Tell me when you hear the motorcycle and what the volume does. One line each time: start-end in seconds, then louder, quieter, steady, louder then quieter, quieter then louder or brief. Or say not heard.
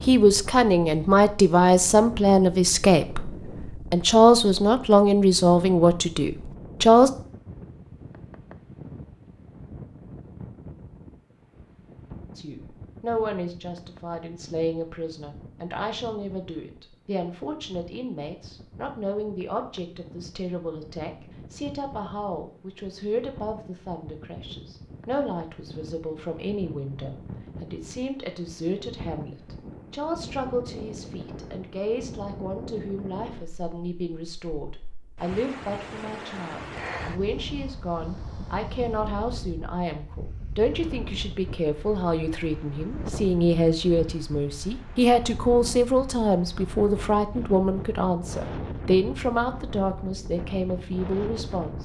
not heard.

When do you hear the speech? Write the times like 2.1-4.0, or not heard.
0.1-7.1, 12.3-51.8.